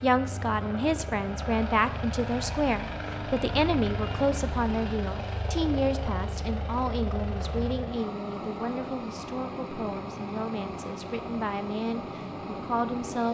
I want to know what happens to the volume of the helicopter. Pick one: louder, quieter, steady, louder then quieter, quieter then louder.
steady.